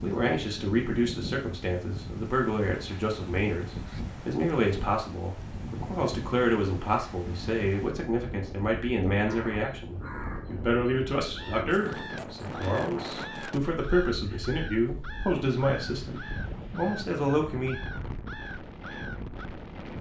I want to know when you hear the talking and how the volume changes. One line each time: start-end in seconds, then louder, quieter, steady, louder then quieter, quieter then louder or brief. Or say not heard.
0.0-17.8 steady.